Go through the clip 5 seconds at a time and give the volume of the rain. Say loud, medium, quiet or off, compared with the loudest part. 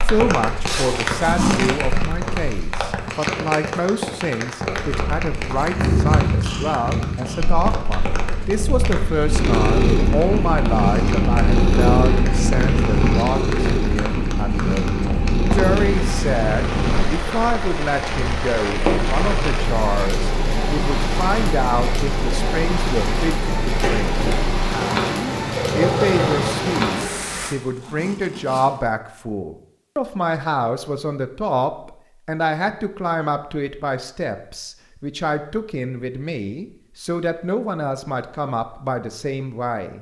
loud, medium, medium, loud, loud, loud, off, off.